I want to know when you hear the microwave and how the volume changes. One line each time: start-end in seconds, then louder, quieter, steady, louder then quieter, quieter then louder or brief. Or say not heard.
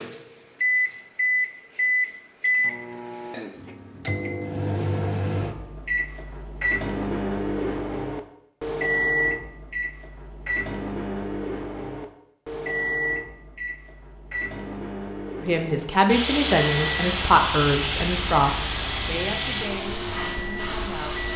0.0-21.3 quieter.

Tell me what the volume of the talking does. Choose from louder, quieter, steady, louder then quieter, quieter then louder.
quieter.